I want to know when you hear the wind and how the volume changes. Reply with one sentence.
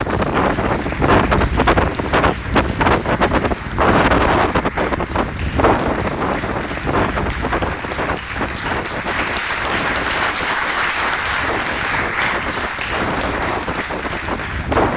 The wind can be heard from 0.0 to 14.9 s, getting quieter.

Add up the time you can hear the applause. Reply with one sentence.
You can hear the applause for 15 seconds altogether.